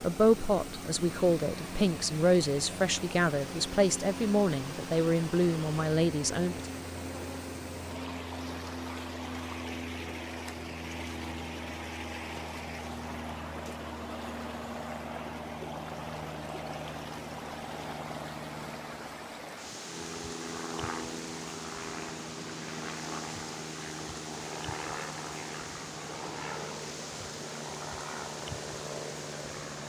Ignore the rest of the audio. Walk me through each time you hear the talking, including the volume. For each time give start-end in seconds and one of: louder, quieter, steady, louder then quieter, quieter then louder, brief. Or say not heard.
0.0-6.6 steady.